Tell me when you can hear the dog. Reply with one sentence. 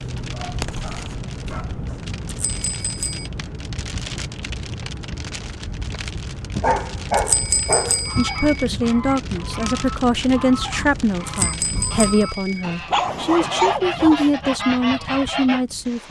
The dog can be heard from 0.1 to 1.9 s, from 6.5 to 8.1 s and from 12.6 to 14.3 s.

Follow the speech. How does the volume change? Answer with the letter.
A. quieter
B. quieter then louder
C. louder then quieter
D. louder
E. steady
E.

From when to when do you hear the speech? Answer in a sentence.
You can hear the speech from 8.2 to 16.0 s.